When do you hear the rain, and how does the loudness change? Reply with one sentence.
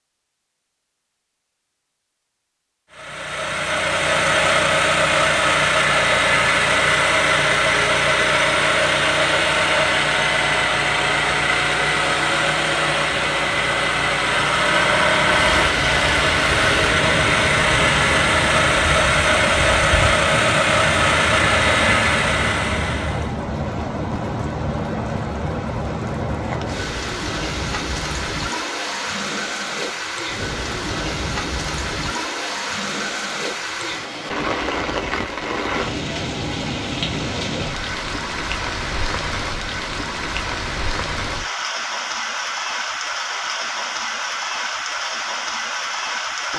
The rain can be heard from 15.3 to 46.5 s, at a steady volume.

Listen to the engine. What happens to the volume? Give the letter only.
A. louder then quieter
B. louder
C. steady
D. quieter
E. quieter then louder
C.